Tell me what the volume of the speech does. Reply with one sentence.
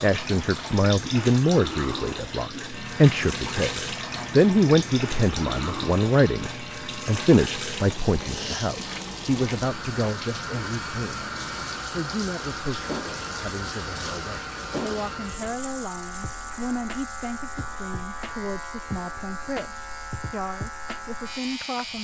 The volume of the speech goes down.